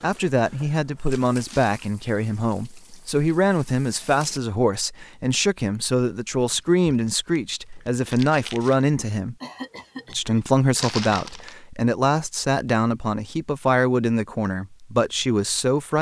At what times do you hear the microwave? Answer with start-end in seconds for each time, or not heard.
not heard.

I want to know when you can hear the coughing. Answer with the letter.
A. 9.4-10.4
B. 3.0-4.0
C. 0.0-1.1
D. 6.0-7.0
A.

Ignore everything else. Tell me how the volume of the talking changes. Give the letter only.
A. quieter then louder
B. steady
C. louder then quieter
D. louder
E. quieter
B.